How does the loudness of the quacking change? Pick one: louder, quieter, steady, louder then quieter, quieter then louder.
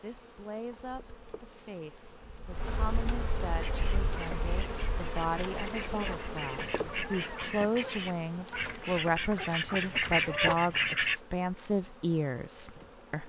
louder.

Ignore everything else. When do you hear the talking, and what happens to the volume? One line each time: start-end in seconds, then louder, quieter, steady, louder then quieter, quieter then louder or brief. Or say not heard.
0.0-13.2 louder.